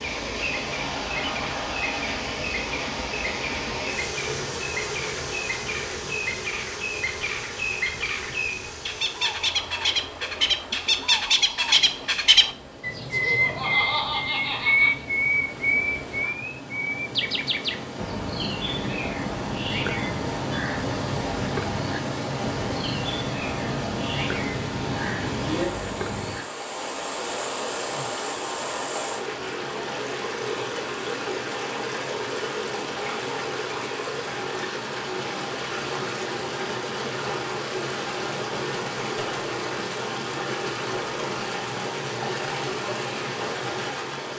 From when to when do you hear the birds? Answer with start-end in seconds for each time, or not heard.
0.0-26.4.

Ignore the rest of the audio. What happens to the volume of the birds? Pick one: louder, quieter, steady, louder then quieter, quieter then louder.
louder then quieter.